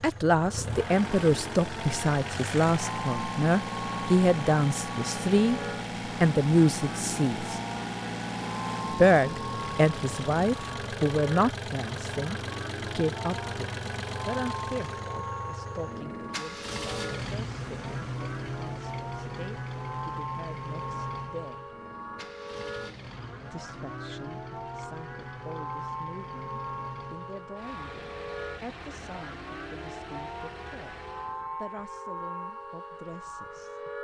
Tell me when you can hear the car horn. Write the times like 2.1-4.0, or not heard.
not heard.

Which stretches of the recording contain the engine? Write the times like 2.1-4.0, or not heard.
0.0-31.5.